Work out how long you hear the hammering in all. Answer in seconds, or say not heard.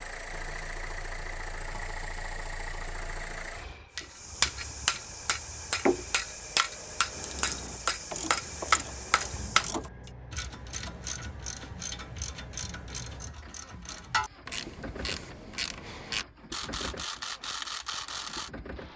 6 s.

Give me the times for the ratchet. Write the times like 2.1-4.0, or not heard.
7.1-18.5.